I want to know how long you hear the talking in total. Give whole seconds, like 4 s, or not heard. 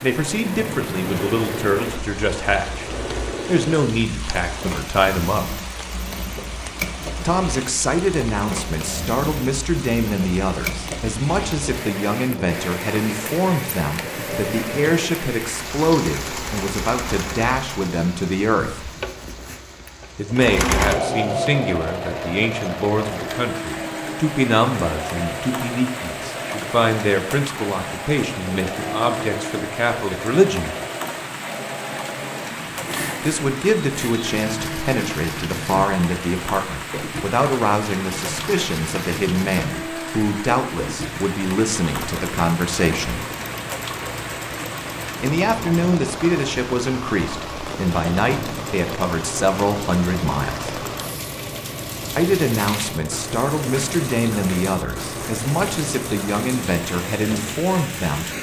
50 s.